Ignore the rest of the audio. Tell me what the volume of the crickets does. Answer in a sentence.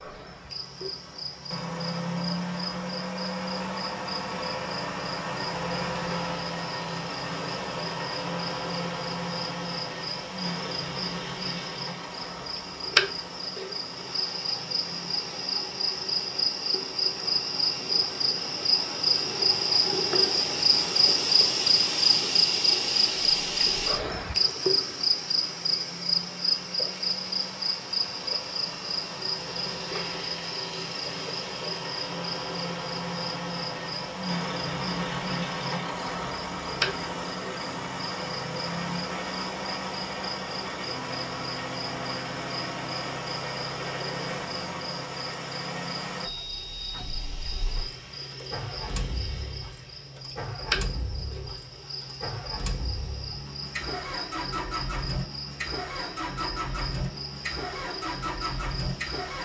The volume of the crickets goes up, then down.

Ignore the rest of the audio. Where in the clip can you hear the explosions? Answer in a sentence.
The explosions can't be heard in this clip.